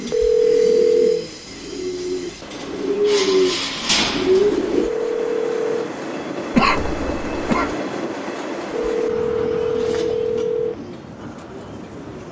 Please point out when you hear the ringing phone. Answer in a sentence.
You can hear the ringing phone from 0.1 to 1.2 s, from 4.8 to 5.9 s and from 8.7 to 10.8 s.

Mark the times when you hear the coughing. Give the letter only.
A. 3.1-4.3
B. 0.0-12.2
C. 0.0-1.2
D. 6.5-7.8
D.